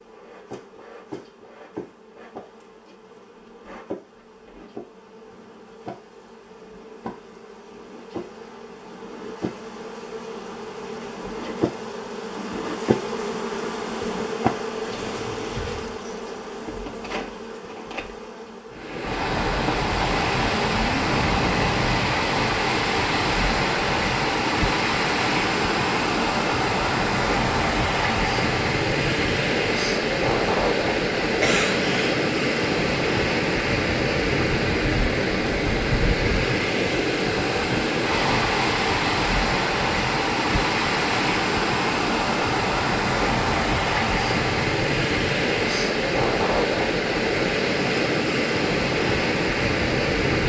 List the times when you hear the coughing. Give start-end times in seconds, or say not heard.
31.4-32.1.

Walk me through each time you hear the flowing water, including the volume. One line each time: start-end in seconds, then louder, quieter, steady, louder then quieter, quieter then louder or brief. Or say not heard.
18.7-50.4 steady.